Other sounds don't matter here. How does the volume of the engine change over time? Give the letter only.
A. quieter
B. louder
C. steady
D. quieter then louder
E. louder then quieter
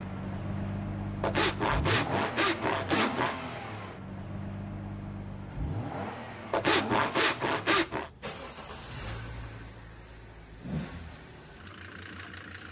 A.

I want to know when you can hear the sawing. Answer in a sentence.
The sawing can be heard from 1.2 to 3.4 s and from 6.5 to 8.1 s.